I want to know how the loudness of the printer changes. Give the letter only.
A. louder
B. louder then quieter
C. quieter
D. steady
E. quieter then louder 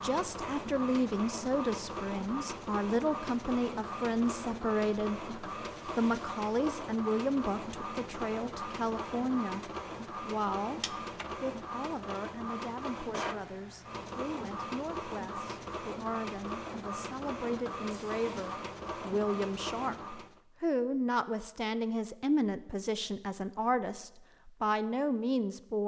D.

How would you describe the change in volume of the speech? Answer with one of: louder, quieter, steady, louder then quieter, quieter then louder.
quieter then louder.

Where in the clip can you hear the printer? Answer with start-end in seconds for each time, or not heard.
0.0-20.4.